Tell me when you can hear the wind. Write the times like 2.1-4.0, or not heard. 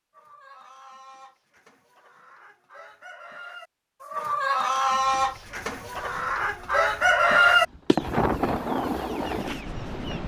5.0-10.2.